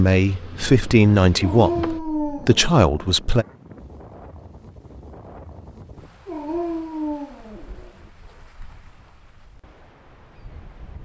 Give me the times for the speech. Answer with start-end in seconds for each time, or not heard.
0.0-3.5.